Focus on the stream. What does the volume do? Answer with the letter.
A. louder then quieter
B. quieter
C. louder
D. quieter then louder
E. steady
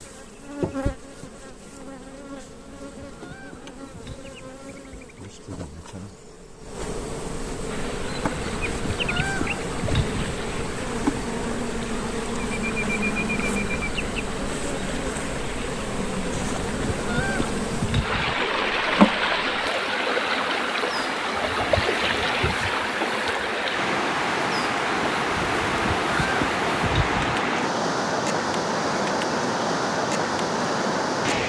C.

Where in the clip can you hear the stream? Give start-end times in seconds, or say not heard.
7.7-31.4.